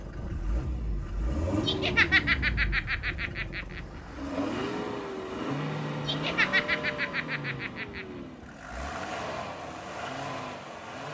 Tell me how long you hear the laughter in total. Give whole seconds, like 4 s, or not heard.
4 s.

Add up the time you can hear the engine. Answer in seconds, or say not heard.
11 s.